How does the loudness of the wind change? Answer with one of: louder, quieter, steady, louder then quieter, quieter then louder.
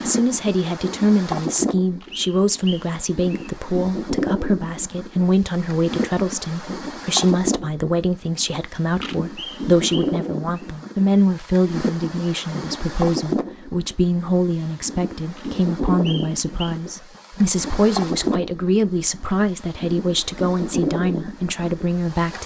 steady.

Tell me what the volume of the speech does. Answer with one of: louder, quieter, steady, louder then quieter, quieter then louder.
steady.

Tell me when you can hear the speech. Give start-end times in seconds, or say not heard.
0.0-22.4.